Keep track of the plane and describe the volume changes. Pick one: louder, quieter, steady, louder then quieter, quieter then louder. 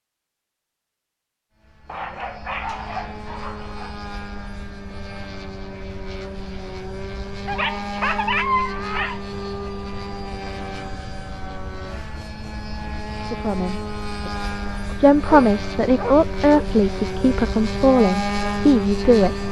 louder.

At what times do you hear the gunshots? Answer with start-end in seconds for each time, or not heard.
not heard.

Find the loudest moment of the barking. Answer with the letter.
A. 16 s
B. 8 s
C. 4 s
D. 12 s
B.